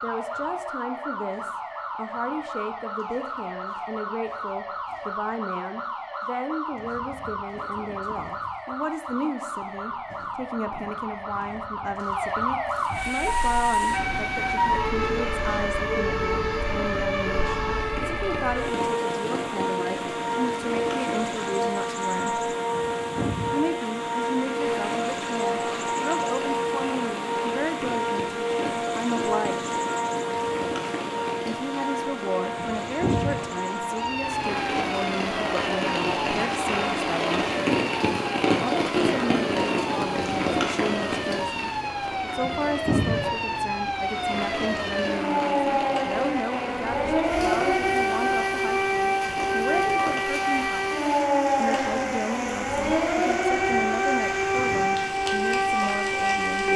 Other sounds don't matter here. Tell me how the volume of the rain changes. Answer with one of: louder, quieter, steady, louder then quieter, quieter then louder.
louder then quieter.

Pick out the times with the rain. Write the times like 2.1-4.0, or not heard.
12.8-56.7.